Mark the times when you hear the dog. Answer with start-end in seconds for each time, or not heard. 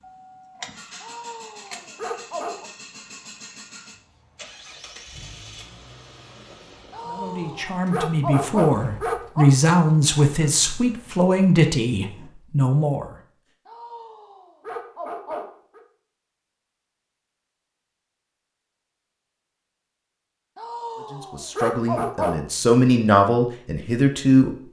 1.0-2.7, 6.9-9.6, 13.7-15.8, 20.6-22.4.